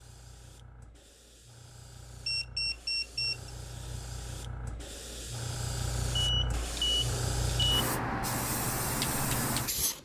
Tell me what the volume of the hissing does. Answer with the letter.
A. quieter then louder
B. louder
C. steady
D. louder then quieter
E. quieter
B.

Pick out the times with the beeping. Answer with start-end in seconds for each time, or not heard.
2.2-3.5, 6.2-7.8.